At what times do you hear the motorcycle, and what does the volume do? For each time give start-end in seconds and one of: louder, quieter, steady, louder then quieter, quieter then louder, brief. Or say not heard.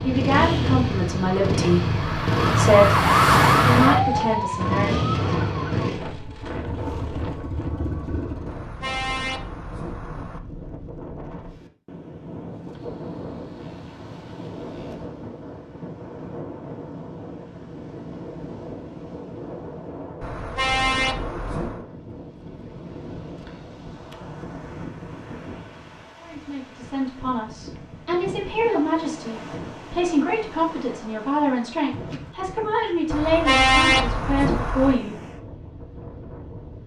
0.0-8.7 quieter.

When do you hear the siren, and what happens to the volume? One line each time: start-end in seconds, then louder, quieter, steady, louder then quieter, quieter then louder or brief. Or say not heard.
0.0-5.9 louder then quieter.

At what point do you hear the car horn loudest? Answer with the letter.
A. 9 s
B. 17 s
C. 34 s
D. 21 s
C.